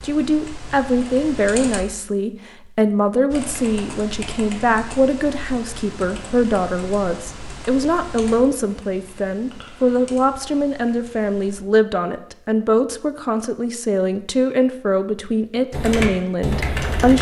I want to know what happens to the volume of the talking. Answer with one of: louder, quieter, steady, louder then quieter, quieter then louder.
steady.